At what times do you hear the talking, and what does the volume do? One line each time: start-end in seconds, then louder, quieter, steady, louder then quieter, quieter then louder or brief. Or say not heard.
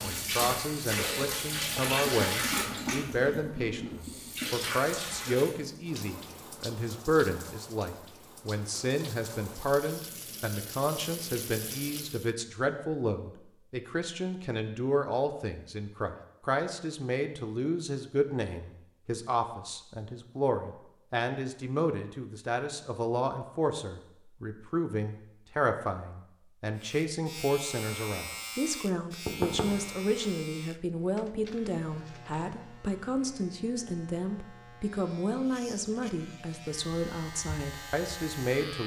0.0-38.8 steady.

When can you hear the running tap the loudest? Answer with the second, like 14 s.
2 s.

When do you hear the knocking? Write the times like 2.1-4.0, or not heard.
29.2-30.4.